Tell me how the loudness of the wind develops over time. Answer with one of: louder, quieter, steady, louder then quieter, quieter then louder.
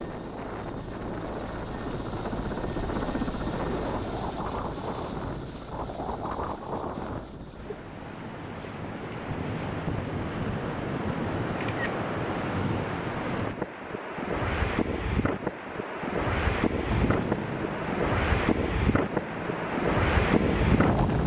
louder.